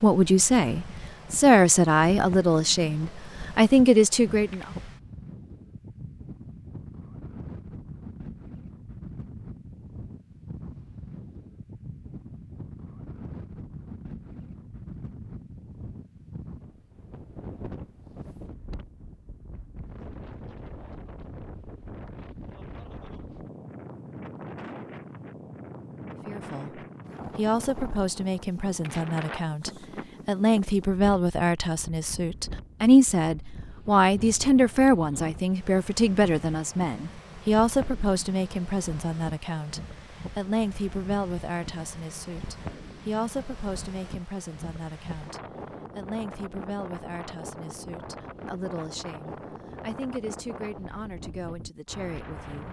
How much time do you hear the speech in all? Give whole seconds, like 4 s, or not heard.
31 s.